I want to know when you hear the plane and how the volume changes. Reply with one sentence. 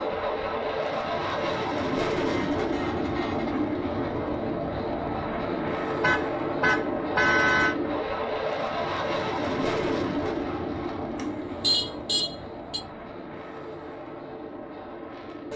You can hear the plane from 0.0 to 15.5 s, getting quieter.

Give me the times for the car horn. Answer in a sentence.
The car horn can be heard from 2.1 to 3.6 s, from 6.0 to 7.8 s and from 11.2 to 12.8 s.